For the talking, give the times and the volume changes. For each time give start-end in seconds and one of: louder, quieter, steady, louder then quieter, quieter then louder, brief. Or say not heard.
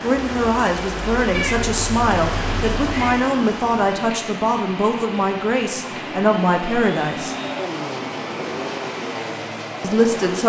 0.0-7.3 steady
9.8-10.4 brief.